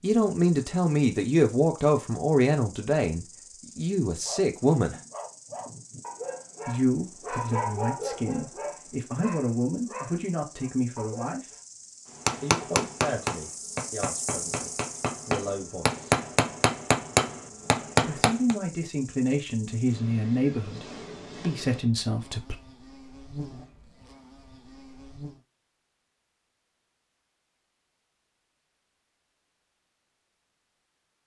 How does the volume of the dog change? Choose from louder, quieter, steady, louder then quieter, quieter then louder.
louder then quieter.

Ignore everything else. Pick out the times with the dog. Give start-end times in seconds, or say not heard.
4.0-11.6.